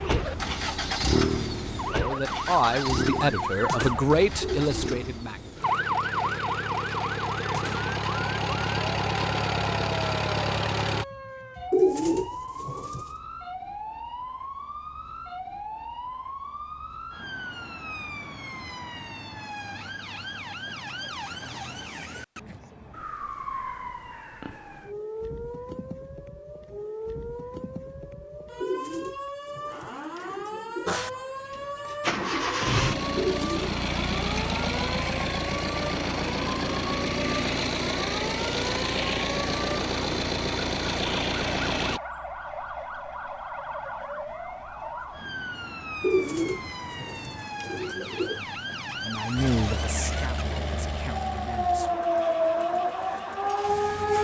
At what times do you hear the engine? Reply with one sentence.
The engine can be heard from 0.0 to 11.1 s, from 30.9 to 42.0 s and from 49.4 to 54.1 s.